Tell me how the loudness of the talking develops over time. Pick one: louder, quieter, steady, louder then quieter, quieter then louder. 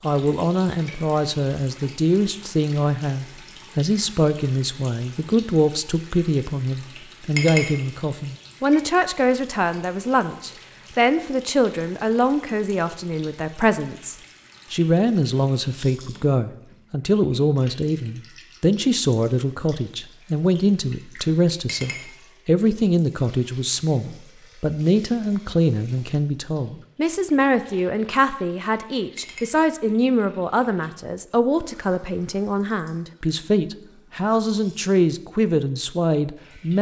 steady.